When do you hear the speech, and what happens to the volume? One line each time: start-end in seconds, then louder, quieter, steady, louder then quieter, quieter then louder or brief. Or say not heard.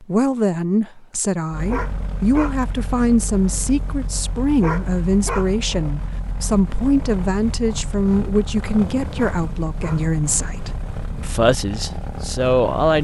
0.0-12.9 steady.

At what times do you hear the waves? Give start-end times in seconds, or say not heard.
not heard.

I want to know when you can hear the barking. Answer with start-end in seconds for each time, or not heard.
1.6-2.5, 4.6-5.5, 9.2-10.1.